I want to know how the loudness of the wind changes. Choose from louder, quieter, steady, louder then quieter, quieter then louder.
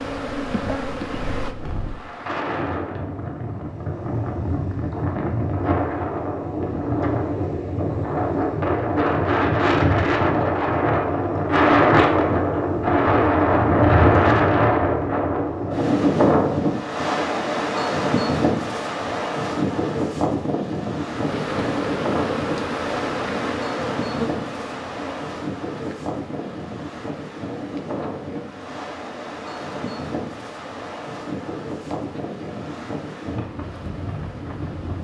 louder then quieter.